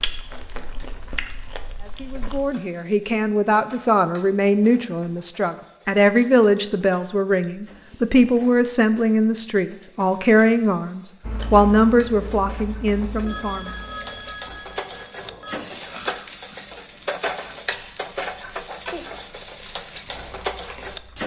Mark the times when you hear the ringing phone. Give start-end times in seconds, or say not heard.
13.2-15.6.